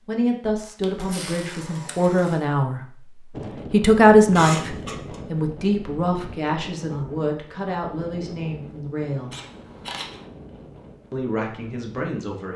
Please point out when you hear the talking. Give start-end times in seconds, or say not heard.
0.1-3.0, 3.7-9.3, 11.1-12.5.